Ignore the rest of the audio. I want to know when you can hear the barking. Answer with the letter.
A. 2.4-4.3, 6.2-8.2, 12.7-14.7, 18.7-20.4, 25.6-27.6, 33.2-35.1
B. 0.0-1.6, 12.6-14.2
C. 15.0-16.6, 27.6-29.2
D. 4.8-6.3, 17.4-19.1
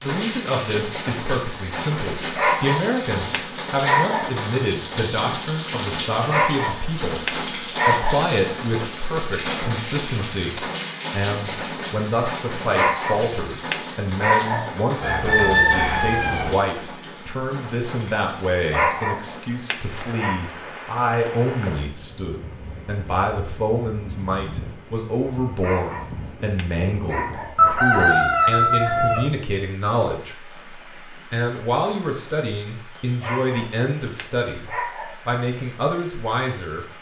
A.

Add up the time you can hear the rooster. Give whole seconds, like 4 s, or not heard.
3 s.